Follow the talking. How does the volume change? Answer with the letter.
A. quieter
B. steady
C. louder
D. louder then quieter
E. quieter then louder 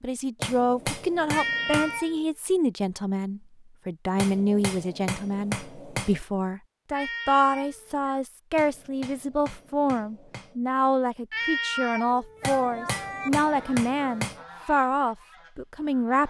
B.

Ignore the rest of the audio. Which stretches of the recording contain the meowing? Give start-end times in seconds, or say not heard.
1.3-2.2, 6.9-8.2, 11.3-13.3.